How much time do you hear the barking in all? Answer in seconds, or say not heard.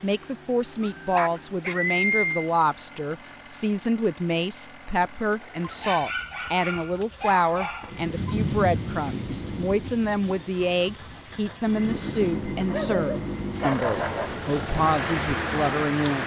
6 s.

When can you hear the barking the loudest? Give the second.
2 s.